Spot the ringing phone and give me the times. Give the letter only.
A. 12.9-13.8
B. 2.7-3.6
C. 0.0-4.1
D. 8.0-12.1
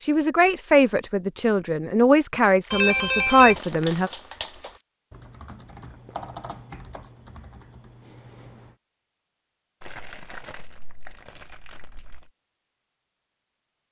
B.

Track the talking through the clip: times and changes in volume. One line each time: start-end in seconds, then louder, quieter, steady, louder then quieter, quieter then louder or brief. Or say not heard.
0.0-4.1 quieter then louder.